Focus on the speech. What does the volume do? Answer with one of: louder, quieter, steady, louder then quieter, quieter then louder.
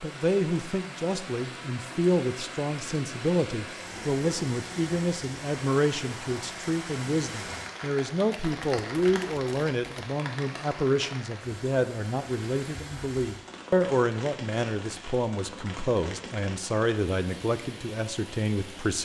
steady.